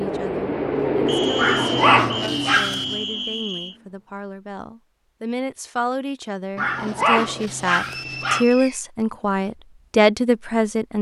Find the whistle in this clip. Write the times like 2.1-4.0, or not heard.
1.1-3.8, 7.8-8.8.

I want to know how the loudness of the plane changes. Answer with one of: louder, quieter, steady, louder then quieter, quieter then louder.
quieter.